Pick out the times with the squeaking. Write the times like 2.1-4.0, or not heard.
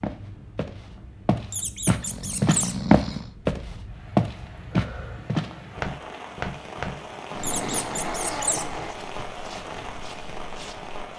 1.5-2.8, 7.4-8.7.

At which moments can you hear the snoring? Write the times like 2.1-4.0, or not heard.
2.0-3.8, 7.3-8.9.